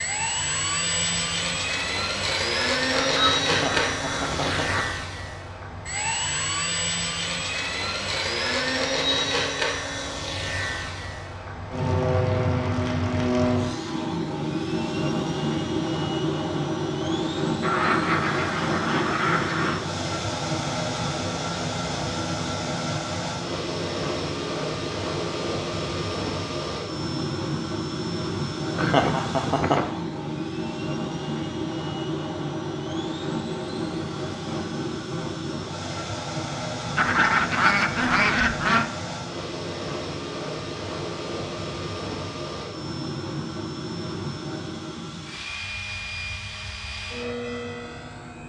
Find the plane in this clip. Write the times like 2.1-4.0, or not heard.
0.0-48.4.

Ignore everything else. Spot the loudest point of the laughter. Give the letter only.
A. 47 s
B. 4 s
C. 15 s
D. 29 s
D.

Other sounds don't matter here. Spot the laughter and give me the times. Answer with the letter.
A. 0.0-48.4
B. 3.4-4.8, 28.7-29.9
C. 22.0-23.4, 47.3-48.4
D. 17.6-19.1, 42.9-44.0
B.